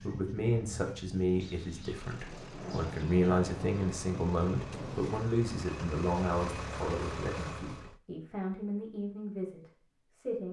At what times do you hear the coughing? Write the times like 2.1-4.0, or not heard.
not heard.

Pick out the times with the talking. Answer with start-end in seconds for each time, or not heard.
0.0-10.4.